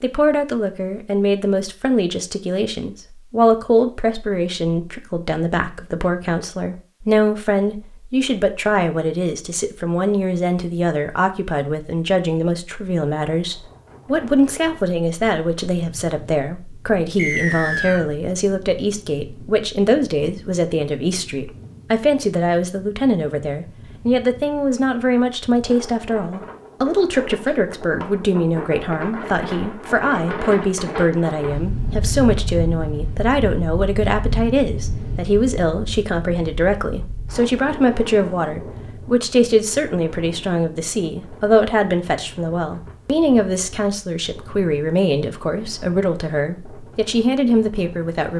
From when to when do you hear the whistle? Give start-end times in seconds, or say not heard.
17.1-18.1.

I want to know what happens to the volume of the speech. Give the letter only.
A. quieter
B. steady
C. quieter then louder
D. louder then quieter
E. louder
B.